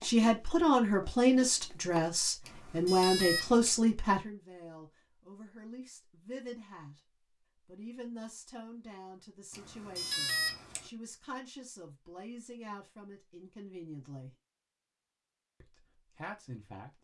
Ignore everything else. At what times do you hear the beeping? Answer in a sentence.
You can hear the beeping from 2.5 to 3.8 s and from 9.5 to 10.8 s.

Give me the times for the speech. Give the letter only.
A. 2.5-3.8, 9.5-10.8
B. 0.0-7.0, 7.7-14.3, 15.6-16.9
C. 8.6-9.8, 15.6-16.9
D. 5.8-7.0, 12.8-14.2
B.